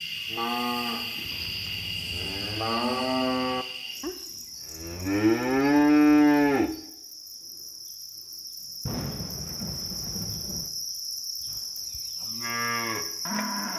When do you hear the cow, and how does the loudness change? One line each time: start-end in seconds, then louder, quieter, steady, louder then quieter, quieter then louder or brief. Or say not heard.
0.3-6.8 louder
11.4-13.7 brief.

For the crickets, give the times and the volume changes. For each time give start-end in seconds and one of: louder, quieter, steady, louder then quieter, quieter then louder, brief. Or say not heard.
0.0-13.7 quieter then louder.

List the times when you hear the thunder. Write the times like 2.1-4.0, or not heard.
8.8-10.7.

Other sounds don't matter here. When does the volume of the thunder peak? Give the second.
9 s.